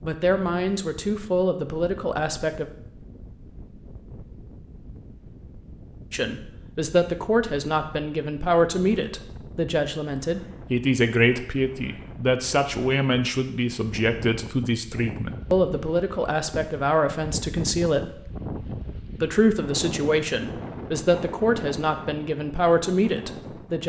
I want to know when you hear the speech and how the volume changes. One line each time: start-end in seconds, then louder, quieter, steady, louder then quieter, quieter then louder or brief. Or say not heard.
0.0-2.6 brief
6.1-23.8 steady.